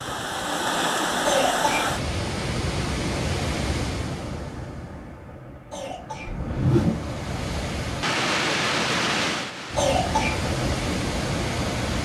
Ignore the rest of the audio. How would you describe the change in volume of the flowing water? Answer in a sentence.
The loudness of the flowing water goes down, then up.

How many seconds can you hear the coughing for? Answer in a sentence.
You can hear the coughing for 2 seconds altogether.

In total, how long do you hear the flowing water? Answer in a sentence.
The flowing water can be heard for 12 seconds in total.